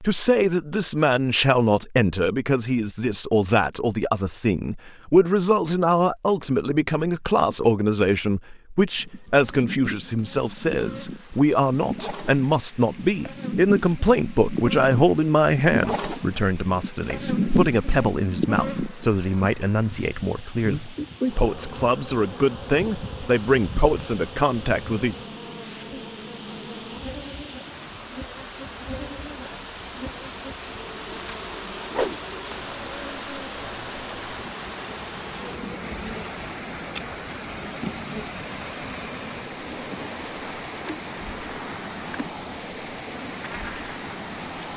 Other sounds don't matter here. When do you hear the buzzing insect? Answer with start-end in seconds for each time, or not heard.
8.9-44.7.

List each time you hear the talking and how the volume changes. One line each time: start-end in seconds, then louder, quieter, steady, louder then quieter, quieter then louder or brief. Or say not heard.
0.0-25.1 steady.